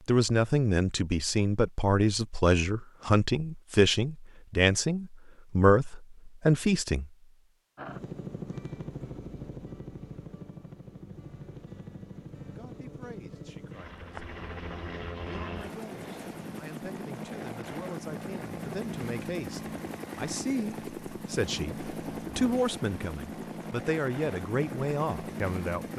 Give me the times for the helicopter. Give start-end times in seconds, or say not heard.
7.8-25.9.